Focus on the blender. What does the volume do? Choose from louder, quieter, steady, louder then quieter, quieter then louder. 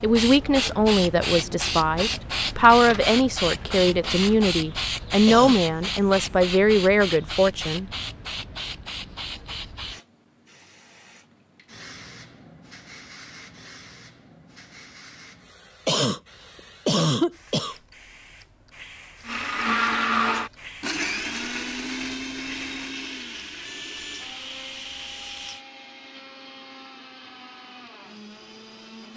quieter.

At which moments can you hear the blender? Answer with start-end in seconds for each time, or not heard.
19.2-29.1.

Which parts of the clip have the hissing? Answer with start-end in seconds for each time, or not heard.
0.0-25.6.